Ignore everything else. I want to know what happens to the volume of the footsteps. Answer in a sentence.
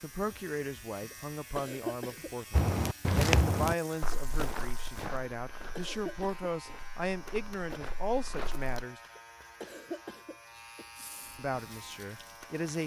The volume of the footsteps goes down, then up.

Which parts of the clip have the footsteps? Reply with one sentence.
You can hear the footsteps from 2.5 to 8.8 s.